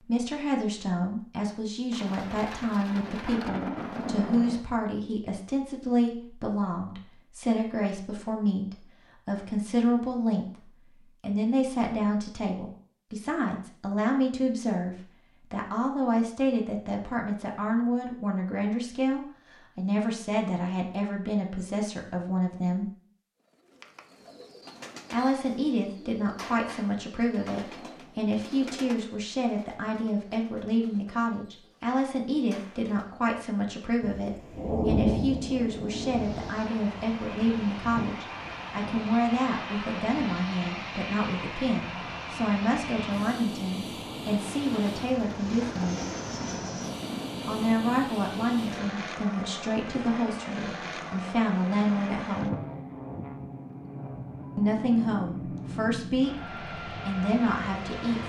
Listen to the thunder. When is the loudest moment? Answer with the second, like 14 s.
35 s.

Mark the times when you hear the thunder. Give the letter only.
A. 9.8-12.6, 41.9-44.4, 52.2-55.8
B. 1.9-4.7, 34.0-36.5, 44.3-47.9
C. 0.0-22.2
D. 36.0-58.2
B.